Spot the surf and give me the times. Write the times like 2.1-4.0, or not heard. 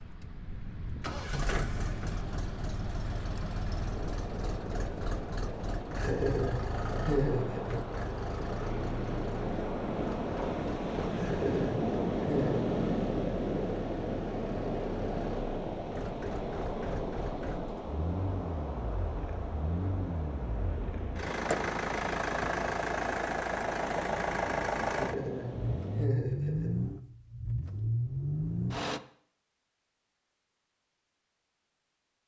0.0-26.1.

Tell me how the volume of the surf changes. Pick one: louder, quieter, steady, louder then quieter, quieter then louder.
louder then quieter.